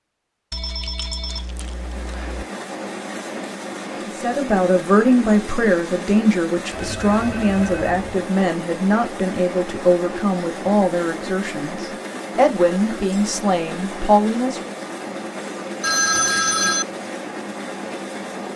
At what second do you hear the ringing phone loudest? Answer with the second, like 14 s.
16 s.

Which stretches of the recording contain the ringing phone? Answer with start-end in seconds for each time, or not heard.
0.5-2.5, 6.7-8.2, 15.8-16.9.